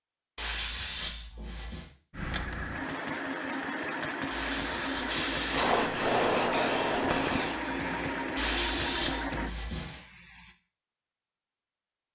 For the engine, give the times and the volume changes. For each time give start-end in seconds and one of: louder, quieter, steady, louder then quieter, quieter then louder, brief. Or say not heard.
2.1-9.6 steady.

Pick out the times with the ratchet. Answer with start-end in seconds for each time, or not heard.
not heard.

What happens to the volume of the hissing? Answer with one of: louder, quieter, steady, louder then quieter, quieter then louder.
quieter.